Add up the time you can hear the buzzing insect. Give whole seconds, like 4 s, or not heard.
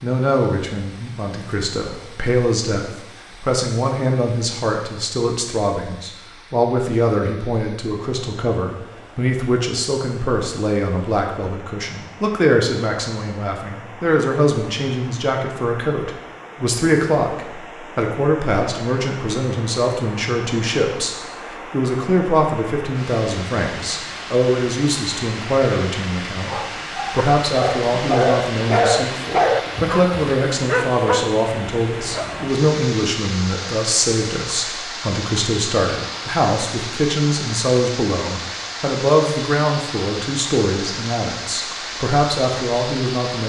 not heard.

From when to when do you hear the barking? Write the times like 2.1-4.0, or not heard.
26.4-32.5.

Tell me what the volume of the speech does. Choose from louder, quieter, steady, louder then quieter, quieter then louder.
steady.